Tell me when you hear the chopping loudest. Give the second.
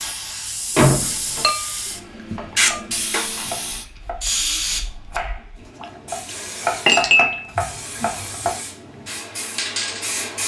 7 s.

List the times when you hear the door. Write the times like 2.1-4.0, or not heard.
0.8-1.5, 7.5-8.6.